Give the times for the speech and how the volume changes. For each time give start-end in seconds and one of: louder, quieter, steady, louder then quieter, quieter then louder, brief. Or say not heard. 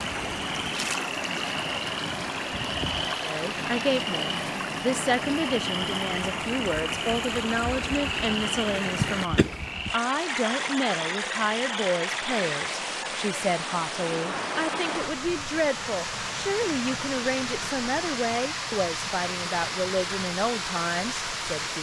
3.2-21.7 steady.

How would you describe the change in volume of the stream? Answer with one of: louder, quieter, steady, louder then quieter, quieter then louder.
steady.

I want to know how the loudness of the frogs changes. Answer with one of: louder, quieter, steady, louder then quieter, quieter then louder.
steady.